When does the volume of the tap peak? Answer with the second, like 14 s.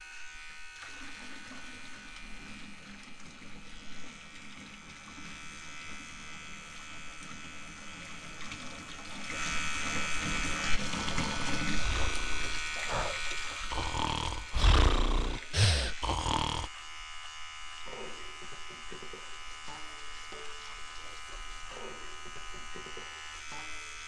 11 s.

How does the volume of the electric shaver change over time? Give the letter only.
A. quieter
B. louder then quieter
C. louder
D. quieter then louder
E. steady
B.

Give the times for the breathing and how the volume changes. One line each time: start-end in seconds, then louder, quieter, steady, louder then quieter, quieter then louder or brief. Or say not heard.
10.2-16.7 louder.